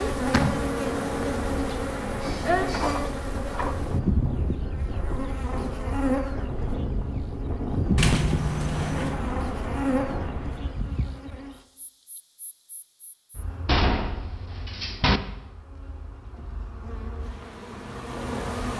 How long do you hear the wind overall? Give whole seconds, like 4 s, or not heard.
11 s.